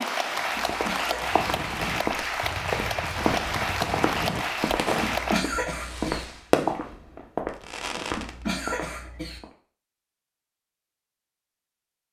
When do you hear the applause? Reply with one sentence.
You can hear the applause from 0.0 to 5.5 s.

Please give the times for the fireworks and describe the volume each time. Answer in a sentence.
You can hear the fireworks from 1.2 to 8.4 s, getting louder then quieter.